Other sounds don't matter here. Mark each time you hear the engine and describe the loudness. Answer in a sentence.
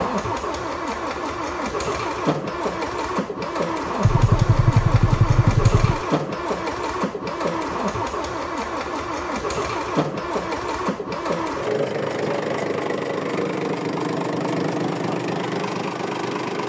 The engine can be heard from 0.0 to 16.6 s, at a steady volume.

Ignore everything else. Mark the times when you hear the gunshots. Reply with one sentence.
The gunshots can be heard from 4.0 to 6.0 s.